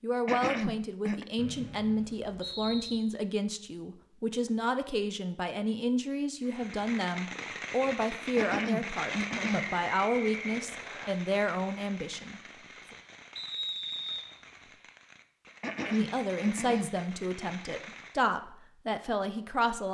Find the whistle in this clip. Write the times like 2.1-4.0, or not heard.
1.4-3.0, 9.6-11.1, 13.3-14.8.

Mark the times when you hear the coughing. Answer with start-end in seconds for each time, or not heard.
0.2-1.2, 8.3-9.7, 15.6-17.0.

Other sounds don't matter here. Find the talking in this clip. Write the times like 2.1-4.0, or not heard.
0.0-12.5, 15.8-19.8.